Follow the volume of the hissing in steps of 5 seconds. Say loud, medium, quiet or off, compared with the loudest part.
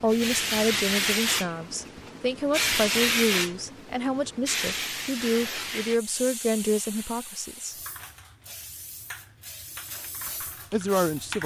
loud, medium, medium.